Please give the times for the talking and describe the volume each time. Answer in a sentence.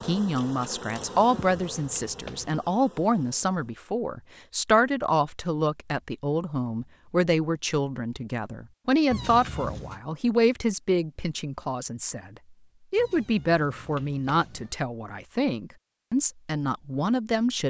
The talking can be heard from 0.0 to 17.6 s, at a steady volume.